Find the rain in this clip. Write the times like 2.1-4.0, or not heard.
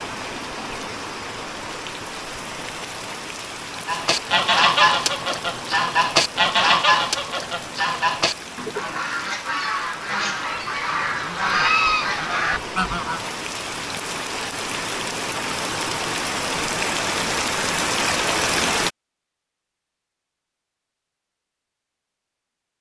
0.0-18.9.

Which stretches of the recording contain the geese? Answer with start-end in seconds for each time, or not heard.
3.8-13.2.